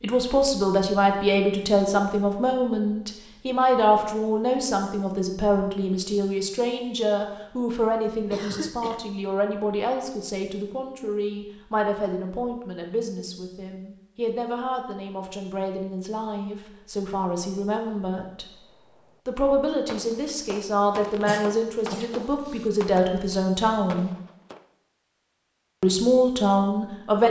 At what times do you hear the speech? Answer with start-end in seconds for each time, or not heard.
0.0-18.4, 19.2-24.1, 25.8-27.2.